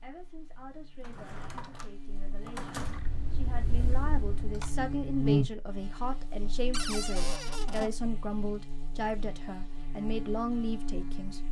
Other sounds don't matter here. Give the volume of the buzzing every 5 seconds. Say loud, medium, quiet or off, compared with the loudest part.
medium, loud, medium.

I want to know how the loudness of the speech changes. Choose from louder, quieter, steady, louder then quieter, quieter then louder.
louder.